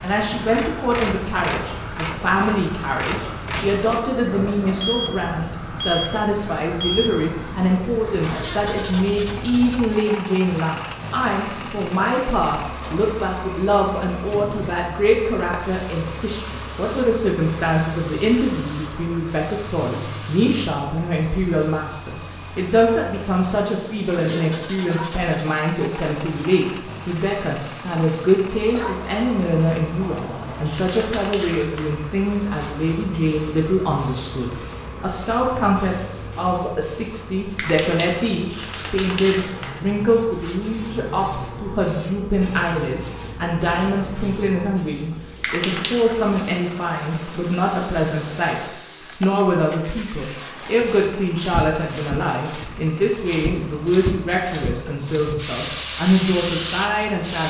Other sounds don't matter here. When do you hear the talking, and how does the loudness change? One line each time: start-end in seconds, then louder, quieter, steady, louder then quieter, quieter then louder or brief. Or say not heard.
0.0-57.4 steady.